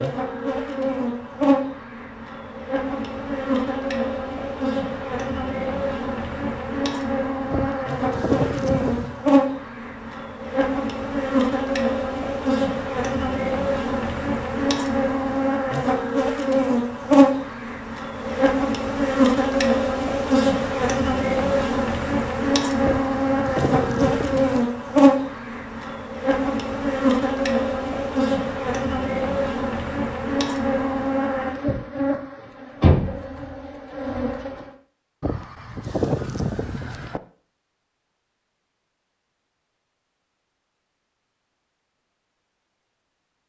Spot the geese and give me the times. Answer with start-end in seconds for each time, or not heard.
7.5-9.2, 22.8-24.7, 35.2-37.2.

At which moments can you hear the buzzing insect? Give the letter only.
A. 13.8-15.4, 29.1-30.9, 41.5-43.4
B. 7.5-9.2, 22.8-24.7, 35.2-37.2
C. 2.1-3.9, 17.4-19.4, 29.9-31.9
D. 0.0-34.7
D.